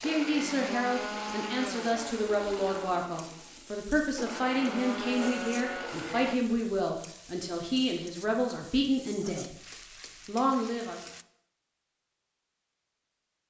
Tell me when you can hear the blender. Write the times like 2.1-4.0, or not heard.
0.0-6.4.